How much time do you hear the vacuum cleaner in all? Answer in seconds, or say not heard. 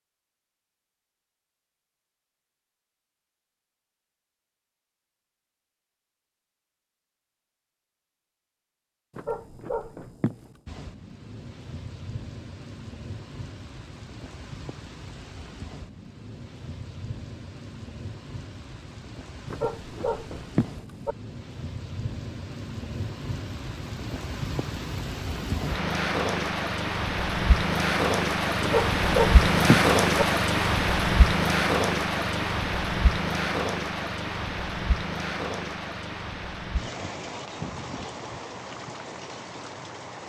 not heard.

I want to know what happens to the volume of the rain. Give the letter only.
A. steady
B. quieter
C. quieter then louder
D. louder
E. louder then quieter
E.